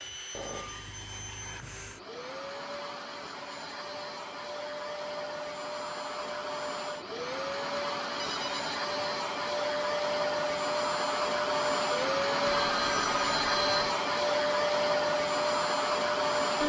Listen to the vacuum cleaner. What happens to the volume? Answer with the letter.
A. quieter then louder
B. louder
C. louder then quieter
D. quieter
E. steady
B.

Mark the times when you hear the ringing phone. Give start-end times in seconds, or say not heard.
0.3-2.0, 8.2-8.6, 12.4-13.9.